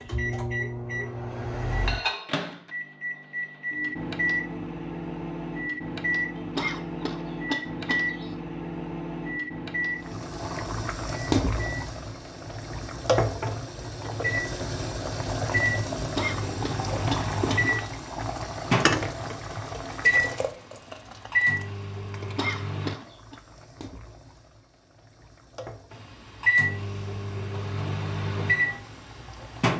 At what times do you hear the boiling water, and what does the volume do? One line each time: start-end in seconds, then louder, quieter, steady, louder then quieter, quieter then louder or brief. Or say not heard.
10.0-29.7 quieter.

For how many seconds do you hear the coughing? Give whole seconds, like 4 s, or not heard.
5 s.